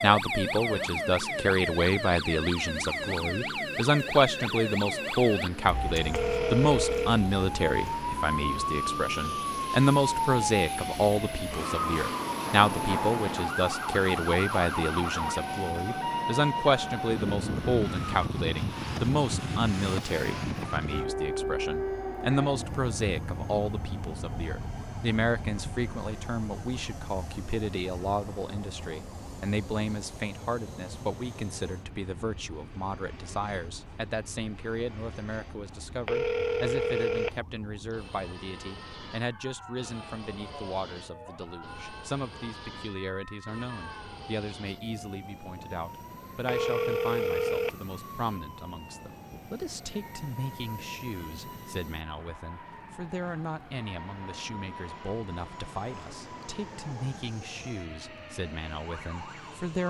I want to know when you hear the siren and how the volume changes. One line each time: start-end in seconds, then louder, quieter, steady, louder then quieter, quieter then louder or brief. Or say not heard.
0.0-59.6 quieter.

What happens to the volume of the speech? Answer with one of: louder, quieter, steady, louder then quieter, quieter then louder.
quieter.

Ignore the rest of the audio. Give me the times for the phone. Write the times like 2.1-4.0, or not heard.
6.1-7.2, 36.0-37.4, 46.5-47.8.